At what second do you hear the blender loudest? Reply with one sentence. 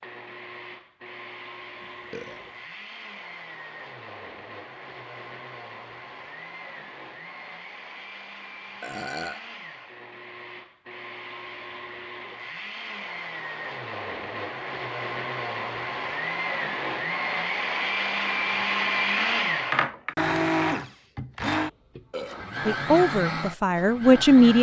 The loudest moment of the blender is at 19 seconds.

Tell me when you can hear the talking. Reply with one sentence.
The talking can be heard from 22.6 to 24.5 s.